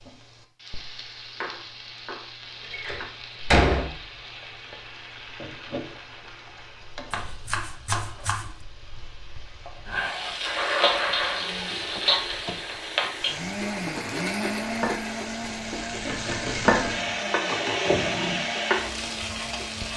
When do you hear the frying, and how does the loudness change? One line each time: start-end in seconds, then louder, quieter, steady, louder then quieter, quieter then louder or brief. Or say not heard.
0.0-19.9 louder.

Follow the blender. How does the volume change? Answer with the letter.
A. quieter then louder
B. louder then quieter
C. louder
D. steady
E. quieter
B.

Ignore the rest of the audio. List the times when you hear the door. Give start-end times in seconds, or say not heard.
2.7-3.9, 11.7-13.1.